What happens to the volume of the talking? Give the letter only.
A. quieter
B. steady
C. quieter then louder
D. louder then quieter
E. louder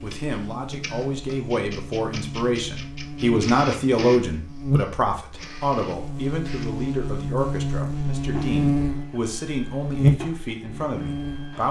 D.